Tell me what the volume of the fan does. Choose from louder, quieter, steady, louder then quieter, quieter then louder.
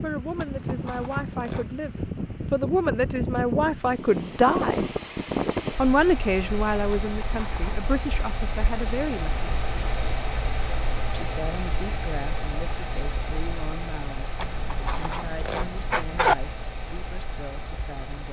quieter.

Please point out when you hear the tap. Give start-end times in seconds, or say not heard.
not heard.